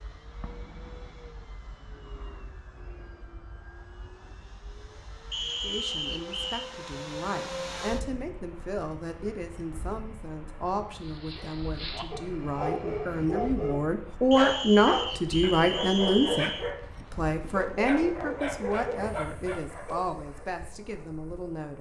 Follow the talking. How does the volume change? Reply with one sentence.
The loudness of the talking goes up, then down.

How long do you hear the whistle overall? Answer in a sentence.
The whistle can be heard for 4 seconds in total.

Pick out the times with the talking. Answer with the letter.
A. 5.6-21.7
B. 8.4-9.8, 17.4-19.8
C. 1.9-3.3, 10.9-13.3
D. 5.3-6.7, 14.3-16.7
A.